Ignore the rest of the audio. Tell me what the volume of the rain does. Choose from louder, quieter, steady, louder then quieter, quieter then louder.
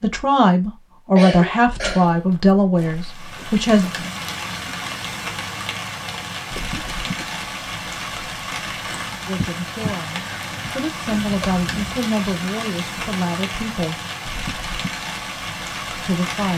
steady.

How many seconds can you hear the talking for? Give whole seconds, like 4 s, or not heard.
9 s.